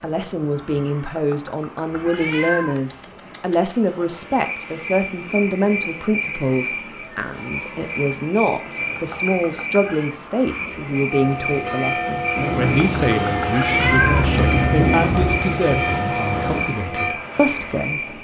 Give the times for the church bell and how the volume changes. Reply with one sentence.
You can hear the church bell from 11.1 to 17.2 s, at a steady volume.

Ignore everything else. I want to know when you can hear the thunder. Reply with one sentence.
The thunder can be heard from 12.3 to 16.6 s.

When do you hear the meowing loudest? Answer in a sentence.
The volume of the meowing peaks at 14 seconds.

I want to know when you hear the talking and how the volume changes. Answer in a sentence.
The talking can be heard from 0.0 to 18.1 s, at a steady volume.